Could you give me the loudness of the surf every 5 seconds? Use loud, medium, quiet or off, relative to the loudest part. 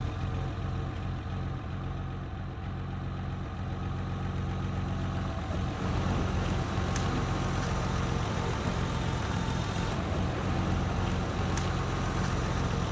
off, loud, loud.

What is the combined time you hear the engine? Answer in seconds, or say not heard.
13 s.